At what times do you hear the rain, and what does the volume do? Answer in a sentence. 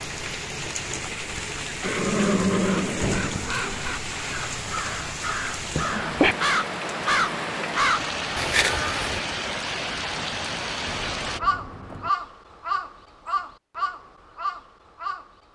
The rain can be heard from 0.0 to 11.4 s, at a steady volume.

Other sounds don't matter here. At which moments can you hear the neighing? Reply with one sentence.
You can hear the neighing from 1.8 to 3.4 s, from 5.7 to 6.3 s and from 10.8 to 12.1 s.